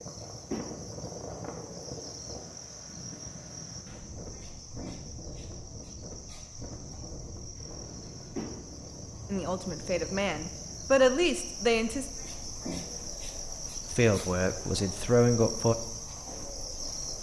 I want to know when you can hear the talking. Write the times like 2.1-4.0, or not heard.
9.3-12.1, 13.9-15.8.